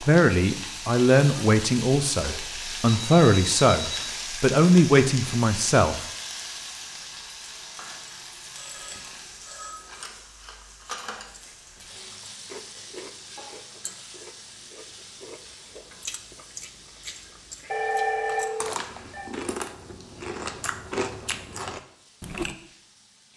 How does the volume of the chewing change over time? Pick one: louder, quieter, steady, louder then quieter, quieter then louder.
louder.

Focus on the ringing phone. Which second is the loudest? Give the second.
18 s.